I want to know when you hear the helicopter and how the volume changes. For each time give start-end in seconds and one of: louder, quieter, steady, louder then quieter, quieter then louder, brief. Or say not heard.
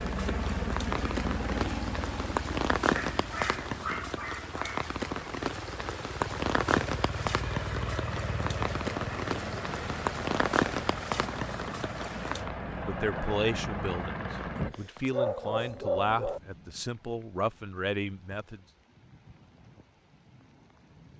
0.0-14.7 quieter then louder.